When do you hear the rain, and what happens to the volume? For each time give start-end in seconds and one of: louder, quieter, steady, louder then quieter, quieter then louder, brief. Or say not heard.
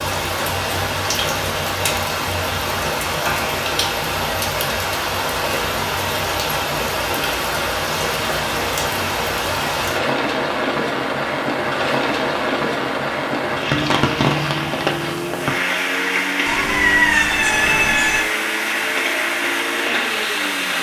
0.0-20.7 steady.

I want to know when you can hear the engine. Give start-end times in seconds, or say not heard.
13.9-20.7.